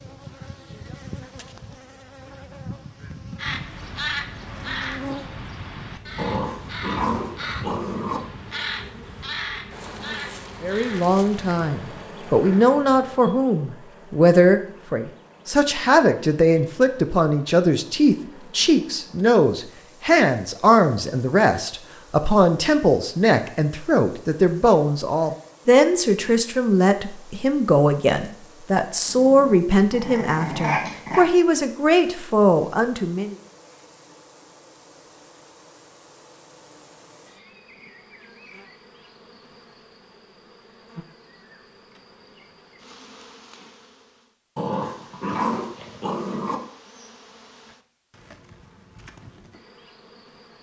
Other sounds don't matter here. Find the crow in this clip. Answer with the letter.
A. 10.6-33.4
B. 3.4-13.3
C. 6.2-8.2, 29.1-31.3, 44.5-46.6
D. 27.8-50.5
B.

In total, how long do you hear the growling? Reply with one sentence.
You can hear the growling for 6 seconds altogether.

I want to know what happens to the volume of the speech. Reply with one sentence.
The volume of the speech stays about the same.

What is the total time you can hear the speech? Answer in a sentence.
The speech can be heard for 23 seconds in total.